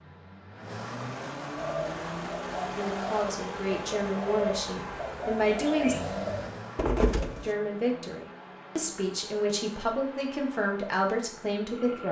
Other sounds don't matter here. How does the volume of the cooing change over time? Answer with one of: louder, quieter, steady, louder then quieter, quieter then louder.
louder.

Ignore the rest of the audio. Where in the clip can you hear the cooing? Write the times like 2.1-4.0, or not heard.
1.6-7.5.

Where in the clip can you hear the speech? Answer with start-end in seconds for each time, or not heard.
2.8-6.0, 7.4-12.0.